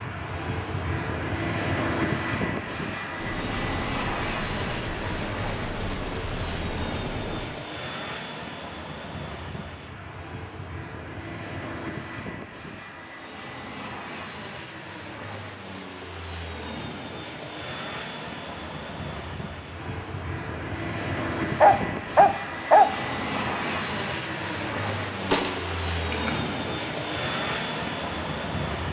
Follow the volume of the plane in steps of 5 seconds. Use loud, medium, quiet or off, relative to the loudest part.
loud, medium, medium, medium, loud, loud.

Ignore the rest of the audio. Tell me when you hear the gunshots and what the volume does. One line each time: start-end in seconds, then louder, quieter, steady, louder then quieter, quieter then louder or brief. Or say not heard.
3.2-7.5 steady
25.3-26.3 brief.